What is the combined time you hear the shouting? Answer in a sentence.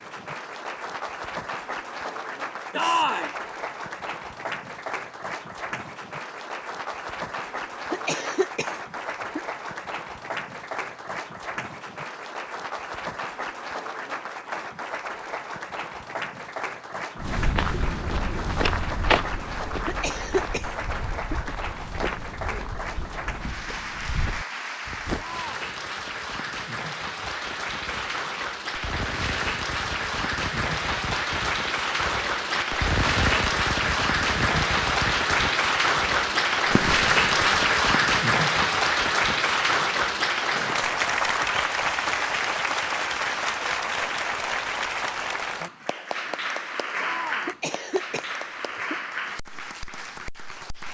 You can hear the shouting for 2 seconds altogether.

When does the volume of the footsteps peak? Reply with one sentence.
The volume of the footsteps peaks at 19 seconds.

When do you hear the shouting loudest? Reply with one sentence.
The volume of the shouting peaks at 3 seconds.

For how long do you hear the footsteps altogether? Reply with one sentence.
The footsteps can be heard for 8 seconds in total.